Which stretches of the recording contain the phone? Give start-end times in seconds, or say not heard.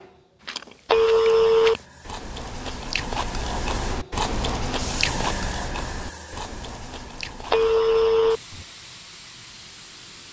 0.8-1.8, 7.5-8.4.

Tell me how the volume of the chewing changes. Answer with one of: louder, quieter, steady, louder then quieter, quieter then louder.
louder then quieter.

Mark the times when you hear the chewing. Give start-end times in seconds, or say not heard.
0.4-8.7.